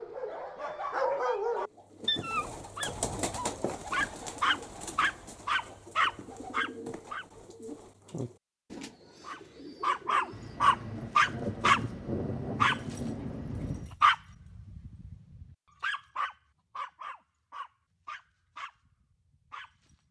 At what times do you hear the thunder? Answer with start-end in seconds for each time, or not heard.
10.3-13.9.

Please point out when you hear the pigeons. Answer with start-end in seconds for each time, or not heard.
1.6-10.7.